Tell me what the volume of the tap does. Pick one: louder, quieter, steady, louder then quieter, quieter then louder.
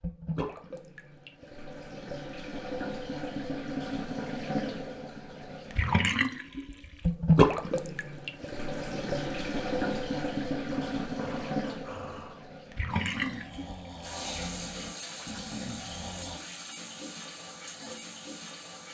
louder then quieter.